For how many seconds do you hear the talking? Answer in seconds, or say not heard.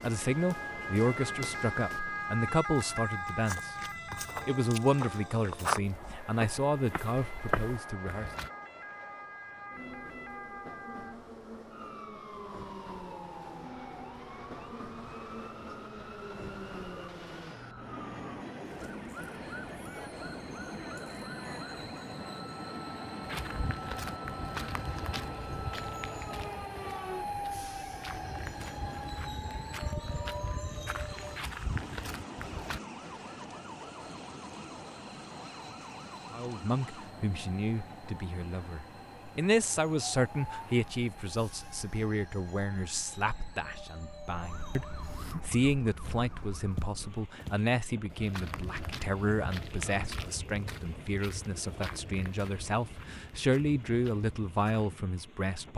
27 s.